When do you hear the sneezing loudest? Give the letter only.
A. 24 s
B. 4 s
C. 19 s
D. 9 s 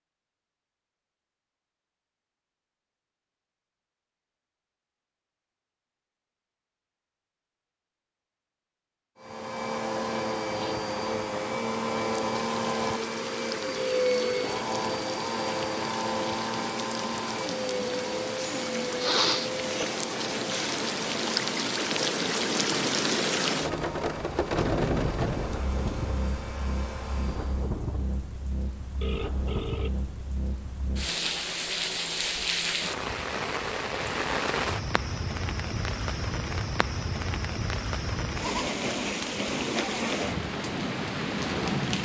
C.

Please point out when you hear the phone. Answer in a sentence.
The phone can be heard from 13.8 to 14.6 s and from 29.0 to 30.1 s.